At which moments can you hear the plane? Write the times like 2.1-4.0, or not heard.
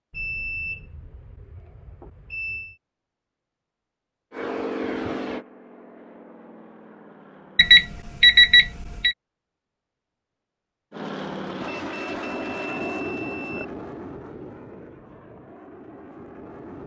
4.3-7.8, 10.9-16.8.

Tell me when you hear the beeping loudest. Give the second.
8 s.